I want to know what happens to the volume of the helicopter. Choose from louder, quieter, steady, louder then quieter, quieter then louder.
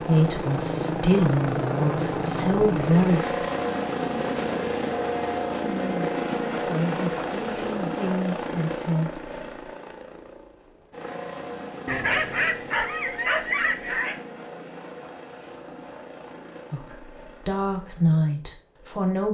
quieter.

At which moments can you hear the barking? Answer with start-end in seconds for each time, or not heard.
11.8-14.2.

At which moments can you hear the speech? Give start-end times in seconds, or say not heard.
0.1-3.5, 5.5-9.2, 16.7-19.2.